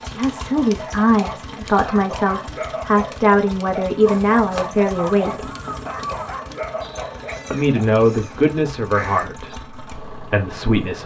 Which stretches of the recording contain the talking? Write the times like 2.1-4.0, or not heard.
0.0-5.5, 7.5-11.0.